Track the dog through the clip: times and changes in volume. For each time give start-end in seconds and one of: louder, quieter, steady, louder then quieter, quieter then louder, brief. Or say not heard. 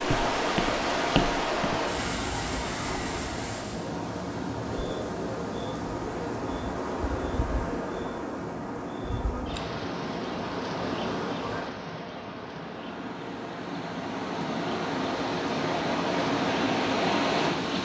not heard.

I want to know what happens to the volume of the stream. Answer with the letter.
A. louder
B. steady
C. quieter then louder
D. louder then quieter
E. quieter
C.